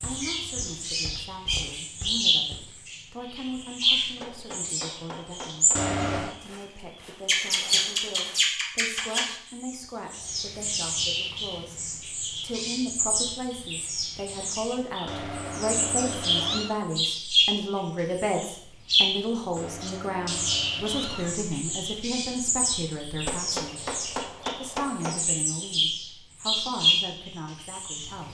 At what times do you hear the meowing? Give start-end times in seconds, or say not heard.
5.8-6.3, 15.1-16.8, 19.6-21.4.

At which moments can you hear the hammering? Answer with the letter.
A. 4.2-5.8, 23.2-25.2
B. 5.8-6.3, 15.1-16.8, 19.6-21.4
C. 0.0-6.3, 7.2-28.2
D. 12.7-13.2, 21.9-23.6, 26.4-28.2
A.